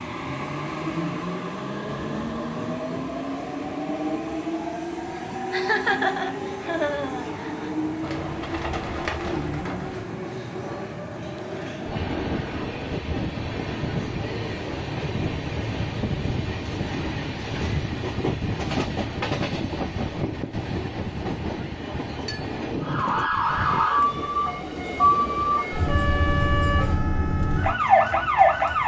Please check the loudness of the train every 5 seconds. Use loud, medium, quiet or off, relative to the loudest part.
loud, loud, loud, loud, loud, medium.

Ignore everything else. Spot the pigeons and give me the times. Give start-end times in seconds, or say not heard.
8.0-10.1.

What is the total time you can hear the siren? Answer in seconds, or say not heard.
6 s.